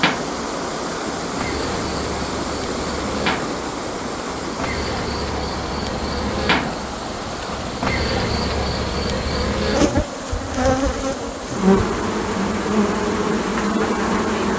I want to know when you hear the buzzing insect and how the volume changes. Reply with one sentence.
You can hear the buzzing insect from 0.0 to 14.5 s, getting louder.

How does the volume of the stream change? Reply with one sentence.
The loudness of the stream goes down.